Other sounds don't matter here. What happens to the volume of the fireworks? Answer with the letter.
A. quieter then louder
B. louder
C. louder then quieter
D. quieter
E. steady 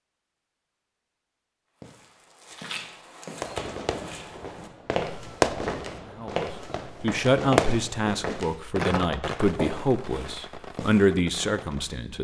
C.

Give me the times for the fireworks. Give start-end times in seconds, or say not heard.
3.4-11.9.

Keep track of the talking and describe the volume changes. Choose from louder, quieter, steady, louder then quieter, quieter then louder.
quieter then louder.